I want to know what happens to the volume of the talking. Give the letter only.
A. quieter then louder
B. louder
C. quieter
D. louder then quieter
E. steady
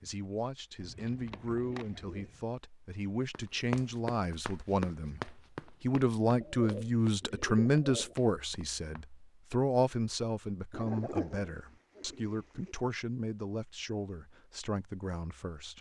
D.